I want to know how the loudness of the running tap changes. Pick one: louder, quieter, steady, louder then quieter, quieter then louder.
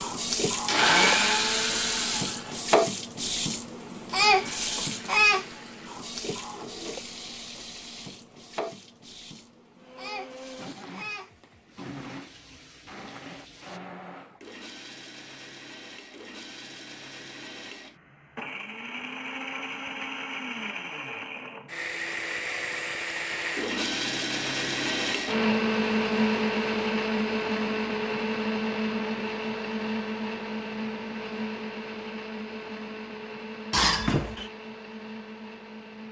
quieter.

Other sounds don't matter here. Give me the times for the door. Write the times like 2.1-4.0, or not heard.
33.7-34.5.